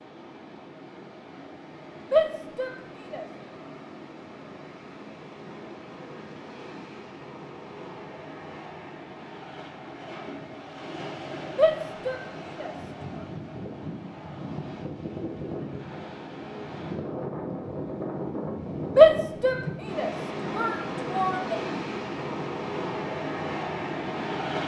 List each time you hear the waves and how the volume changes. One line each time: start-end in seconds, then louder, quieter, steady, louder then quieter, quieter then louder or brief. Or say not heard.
0.0-24.6 louder.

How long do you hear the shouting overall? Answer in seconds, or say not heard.
5 s.